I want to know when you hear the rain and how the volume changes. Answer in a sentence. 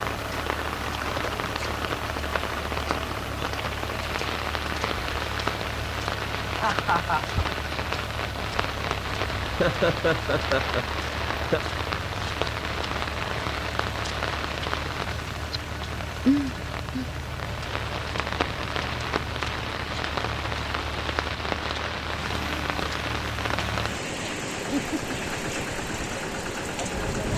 You can hear the rain from 0.0 to 27.3 s, at a steady volume.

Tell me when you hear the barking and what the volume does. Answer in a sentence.
You can't hear the barking here.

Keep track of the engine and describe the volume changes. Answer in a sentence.
The volume of the engine stays about the same.